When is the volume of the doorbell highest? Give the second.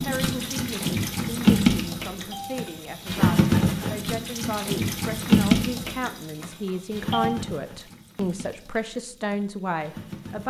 7 s.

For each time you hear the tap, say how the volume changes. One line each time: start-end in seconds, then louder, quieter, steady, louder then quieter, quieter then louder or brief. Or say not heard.
0.0-10.4 quieter.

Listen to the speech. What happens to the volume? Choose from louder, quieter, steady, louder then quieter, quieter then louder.
louder.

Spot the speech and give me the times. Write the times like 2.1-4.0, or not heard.
0.0-10.4.